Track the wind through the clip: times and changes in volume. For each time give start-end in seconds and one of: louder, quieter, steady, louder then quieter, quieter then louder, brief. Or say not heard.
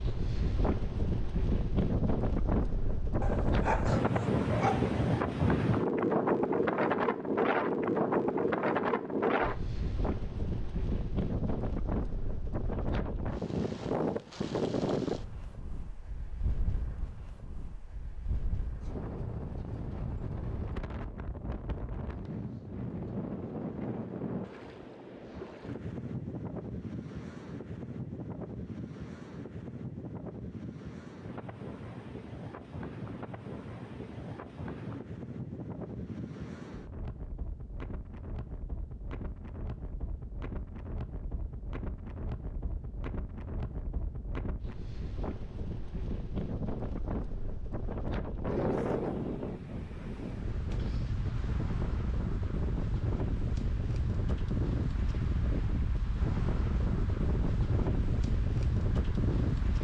0.0-59.8 quieter then louder.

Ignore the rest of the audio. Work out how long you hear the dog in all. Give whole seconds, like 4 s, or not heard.
2 s.